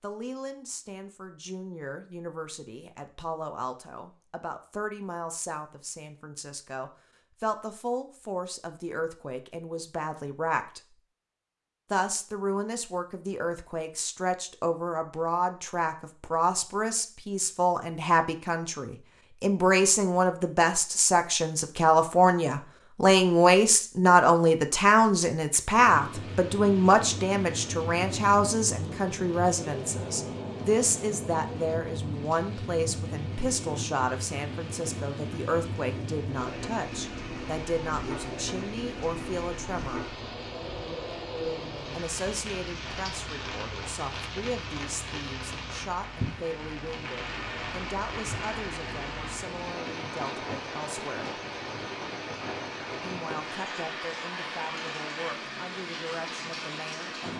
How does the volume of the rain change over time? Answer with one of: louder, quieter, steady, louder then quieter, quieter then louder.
steady.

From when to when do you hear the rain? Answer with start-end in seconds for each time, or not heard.
25.6-57.3.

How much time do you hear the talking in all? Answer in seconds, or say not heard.
53 s.